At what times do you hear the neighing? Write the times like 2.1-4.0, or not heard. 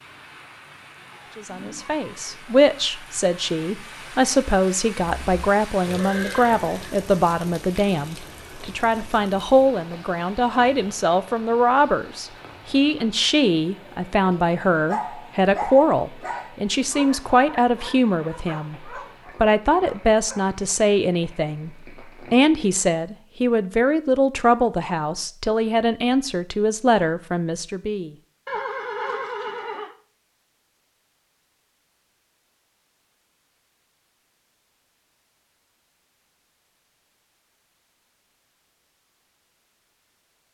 5.0-7.0, 28.4-29.9.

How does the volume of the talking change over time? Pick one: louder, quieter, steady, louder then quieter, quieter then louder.
steady.